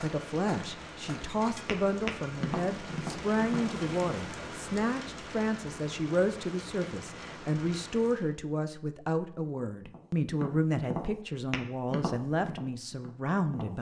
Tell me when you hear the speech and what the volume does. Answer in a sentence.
The speech can be heard from 0.0 to 13.7 s, at a steady volume.